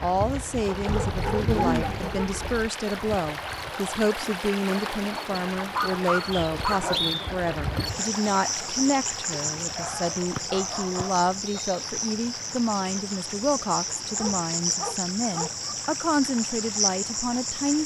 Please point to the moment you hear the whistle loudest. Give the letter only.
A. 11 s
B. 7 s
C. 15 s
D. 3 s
B.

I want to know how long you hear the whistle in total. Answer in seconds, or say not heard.
2 s.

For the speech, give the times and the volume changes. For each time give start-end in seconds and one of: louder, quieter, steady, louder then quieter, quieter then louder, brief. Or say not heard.
0.0-17.8 steady.